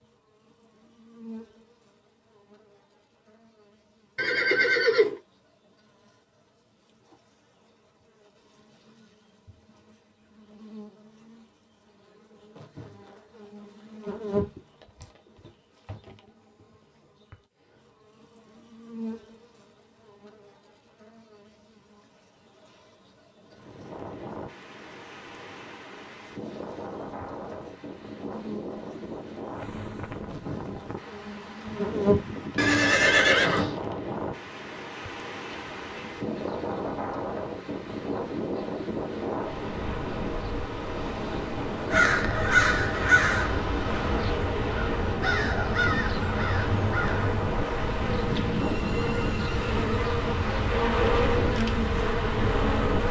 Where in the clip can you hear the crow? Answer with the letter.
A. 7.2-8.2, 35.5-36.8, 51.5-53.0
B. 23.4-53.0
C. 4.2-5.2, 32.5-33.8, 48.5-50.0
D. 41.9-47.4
D.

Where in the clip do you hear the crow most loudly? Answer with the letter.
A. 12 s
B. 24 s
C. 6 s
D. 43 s
D.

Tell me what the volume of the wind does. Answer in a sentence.
The loudness of the wind goes up.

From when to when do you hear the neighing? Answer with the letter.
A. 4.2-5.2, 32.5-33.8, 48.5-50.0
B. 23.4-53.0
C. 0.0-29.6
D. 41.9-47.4
A.